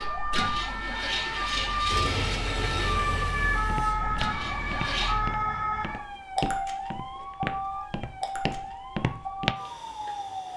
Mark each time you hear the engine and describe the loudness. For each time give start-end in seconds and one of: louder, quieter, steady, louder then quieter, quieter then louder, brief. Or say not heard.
0.0-5.2 quieter.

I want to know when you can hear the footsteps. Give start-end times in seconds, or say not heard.
3.6-9.6.